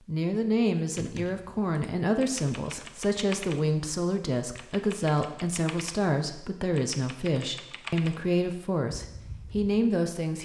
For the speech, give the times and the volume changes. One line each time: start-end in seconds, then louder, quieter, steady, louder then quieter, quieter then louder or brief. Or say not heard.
0.0-10.3 steady.